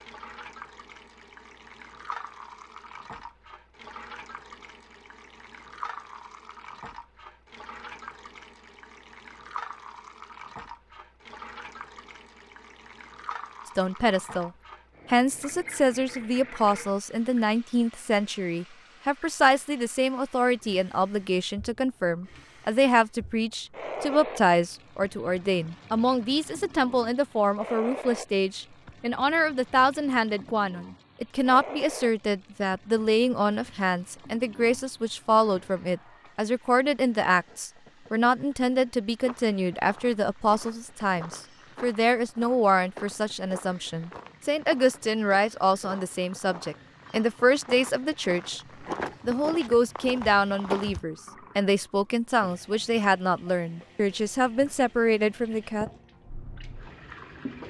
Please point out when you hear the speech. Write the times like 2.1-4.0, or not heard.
13.8-48.6, 49.2-55.9.